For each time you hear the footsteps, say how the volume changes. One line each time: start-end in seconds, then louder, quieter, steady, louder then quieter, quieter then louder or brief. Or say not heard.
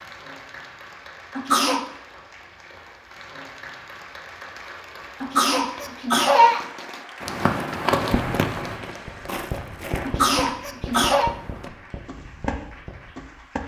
7.2-13.6 quieter then louder.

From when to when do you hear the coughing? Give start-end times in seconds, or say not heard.
1.4-1.9, 5.2-6.7, 10.0-11.3.